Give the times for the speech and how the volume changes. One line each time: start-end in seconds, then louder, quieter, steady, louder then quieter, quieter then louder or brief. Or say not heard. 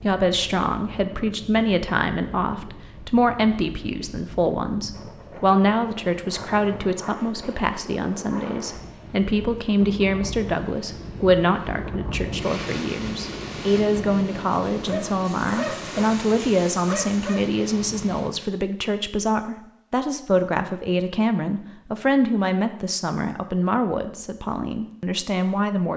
0.0-25.9 steady.